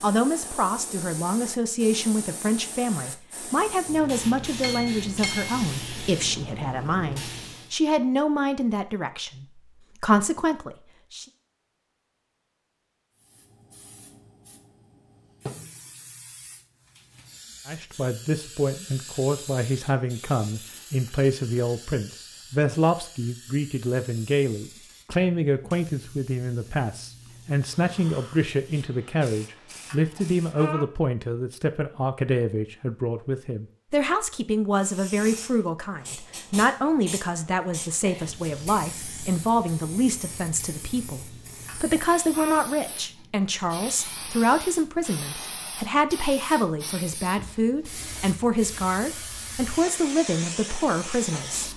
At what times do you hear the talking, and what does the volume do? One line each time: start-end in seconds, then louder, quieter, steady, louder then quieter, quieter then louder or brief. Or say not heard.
0.0-11.2 steady
17.6-51.7 steady.